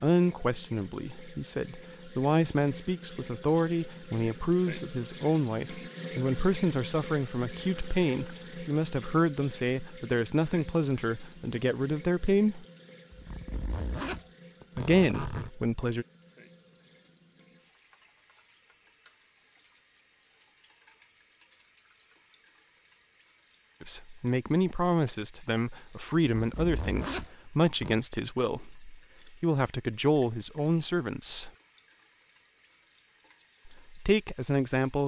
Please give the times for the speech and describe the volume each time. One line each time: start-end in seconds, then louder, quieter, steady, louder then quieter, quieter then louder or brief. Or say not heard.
0.0-12.7 steady
14.8-16.1 brief
23.8-31.5 steady
33.6-35.0 brief.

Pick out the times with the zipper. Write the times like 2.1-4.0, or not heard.
13.1-15.5, 26.4-28.0.